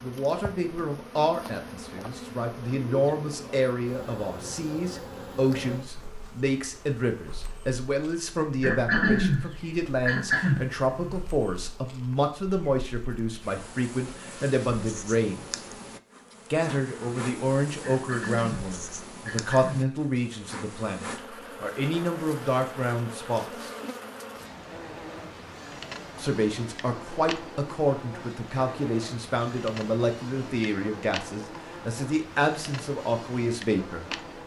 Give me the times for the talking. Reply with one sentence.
The talking can be heard from 0.0 to 15.6 s, from 16.5 to 23.7 s and from 26.1 to 34.4 s.